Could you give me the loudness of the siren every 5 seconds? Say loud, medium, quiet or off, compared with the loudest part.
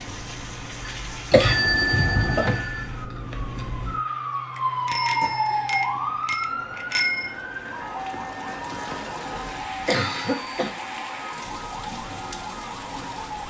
loud, loud, medium.